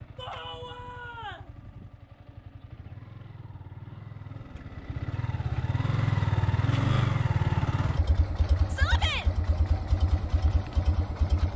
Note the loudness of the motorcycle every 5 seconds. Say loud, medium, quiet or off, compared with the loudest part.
quiet, loud, medium.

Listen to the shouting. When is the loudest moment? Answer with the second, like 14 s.
9 s.